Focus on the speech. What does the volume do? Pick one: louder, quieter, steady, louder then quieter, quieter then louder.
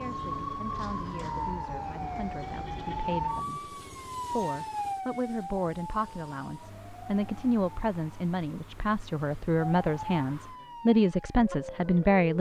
louder.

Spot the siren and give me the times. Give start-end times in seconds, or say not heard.
0.0-12.2.